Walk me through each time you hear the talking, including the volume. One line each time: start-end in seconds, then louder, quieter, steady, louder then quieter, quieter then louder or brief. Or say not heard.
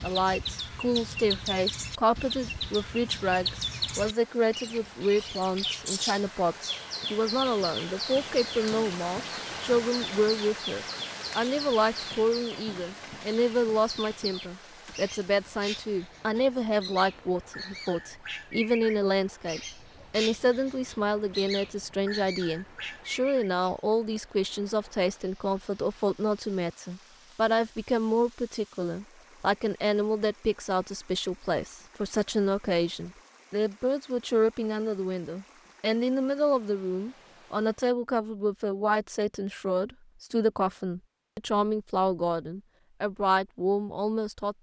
0.0-44.5 steady.